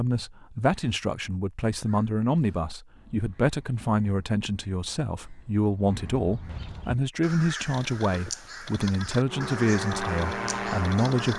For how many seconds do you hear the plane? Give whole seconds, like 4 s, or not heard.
2 s.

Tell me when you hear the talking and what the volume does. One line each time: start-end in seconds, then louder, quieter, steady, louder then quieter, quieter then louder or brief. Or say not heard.
0.0-11.3 steady.